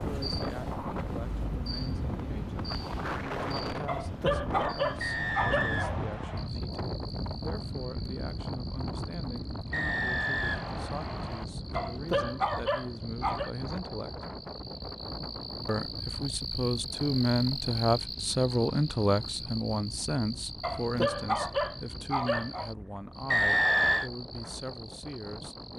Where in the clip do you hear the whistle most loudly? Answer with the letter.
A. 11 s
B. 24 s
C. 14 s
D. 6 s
B.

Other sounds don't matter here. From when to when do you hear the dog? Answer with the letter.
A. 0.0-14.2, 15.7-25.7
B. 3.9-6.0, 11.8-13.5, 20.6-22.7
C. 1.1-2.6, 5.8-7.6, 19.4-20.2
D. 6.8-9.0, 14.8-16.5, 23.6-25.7
B.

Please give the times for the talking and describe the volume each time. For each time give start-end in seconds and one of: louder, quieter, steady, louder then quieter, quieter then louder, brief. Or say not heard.
0.0-14.2 steady
15.7-25.7 quieter.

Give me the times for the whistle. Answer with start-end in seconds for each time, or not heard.
5.0-6.5, 9.7-11.4, 23.2-24.1.